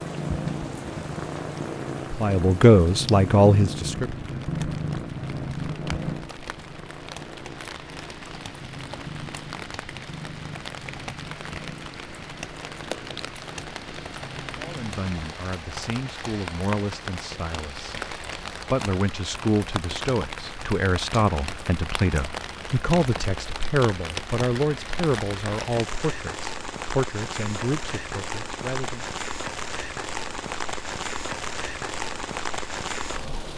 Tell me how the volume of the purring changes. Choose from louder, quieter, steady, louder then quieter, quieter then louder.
quieter.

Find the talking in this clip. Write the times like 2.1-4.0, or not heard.
2.1-4.1, 14.6-29.1.